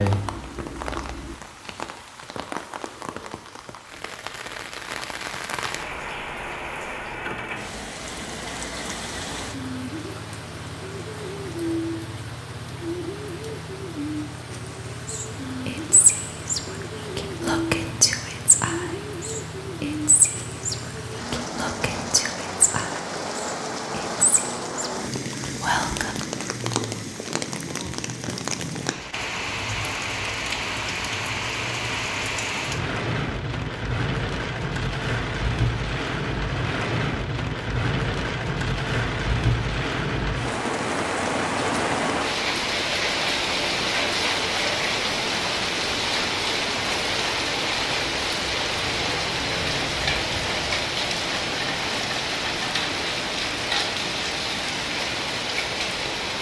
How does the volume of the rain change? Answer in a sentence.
The volume of the rain goes up.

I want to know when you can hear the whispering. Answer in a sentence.
The whispering can be heard from 15.1 to 26.1 s.